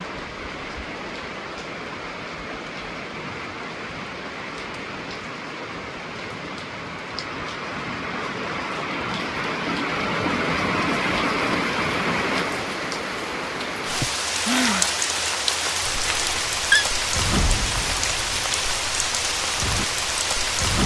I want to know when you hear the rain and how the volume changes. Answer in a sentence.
You can hear the rain from 0.0 to 20.8 s, getting louder.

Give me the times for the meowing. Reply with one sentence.
The meowing can be heard from 16.1 to 16.9 s.